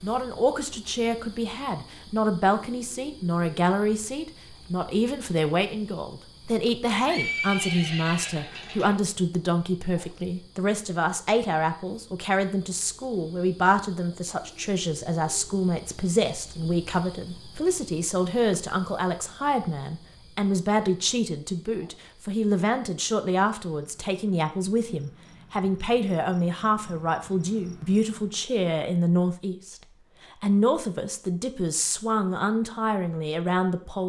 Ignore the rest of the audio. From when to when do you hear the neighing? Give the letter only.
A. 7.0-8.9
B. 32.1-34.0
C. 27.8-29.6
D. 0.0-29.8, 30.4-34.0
A.